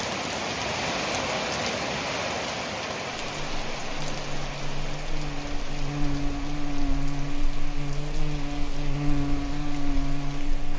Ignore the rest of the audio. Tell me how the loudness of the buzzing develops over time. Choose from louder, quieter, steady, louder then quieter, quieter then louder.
louder.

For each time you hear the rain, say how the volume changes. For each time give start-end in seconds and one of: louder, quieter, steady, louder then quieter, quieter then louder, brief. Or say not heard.
0.0-10.7 quieter.